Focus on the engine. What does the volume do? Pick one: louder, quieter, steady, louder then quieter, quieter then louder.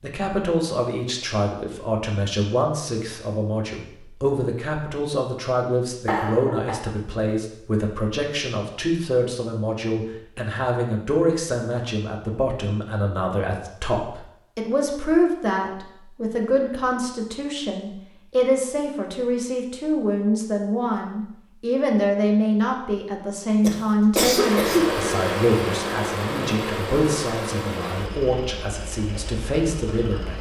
quieter.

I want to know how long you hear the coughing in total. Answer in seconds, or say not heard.
2 s.